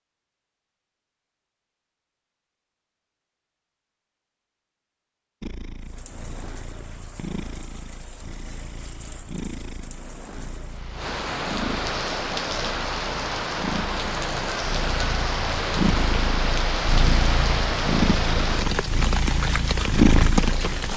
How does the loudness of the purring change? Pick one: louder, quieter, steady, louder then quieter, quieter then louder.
louder.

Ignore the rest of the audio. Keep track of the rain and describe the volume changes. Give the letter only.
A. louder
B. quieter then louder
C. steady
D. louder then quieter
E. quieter
A.